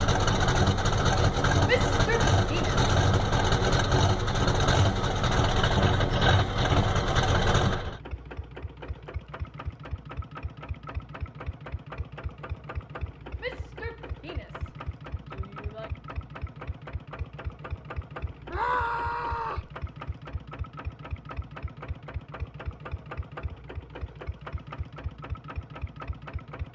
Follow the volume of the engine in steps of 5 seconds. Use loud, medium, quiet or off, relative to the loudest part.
loud, loud, quiet, quiet, quiet, quiet.